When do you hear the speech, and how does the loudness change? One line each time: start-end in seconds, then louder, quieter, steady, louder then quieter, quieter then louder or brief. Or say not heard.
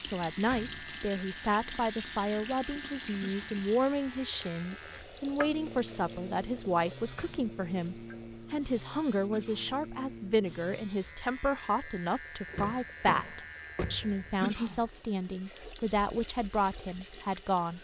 0.0-17.7 steady.